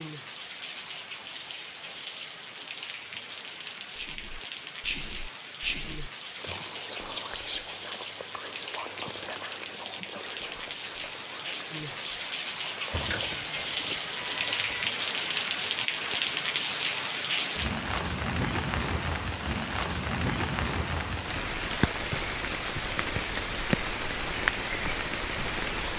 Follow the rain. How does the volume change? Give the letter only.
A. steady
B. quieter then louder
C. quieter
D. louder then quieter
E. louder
E.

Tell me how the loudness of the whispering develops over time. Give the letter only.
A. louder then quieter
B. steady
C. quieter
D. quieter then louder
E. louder
C.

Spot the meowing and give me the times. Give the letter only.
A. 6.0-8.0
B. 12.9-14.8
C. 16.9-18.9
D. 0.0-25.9
B.